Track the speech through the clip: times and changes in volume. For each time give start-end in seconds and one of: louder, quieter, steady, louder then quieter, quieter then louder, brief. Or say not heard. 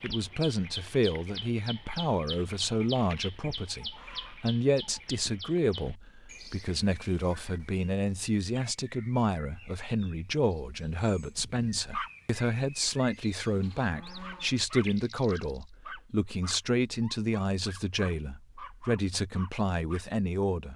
0.0-20.7 steady.